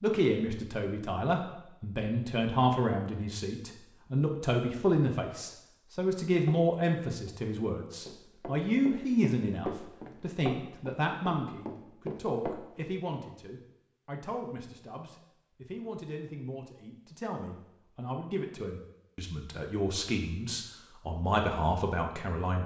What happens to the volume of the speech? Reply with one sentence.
The loudness of the speech goes down, then up.